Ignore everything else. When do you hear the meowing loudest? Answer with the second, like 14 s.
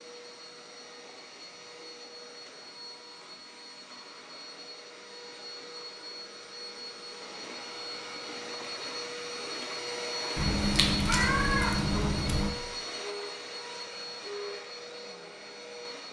11 s.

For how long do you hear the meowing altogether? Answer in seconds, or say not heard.
2 s.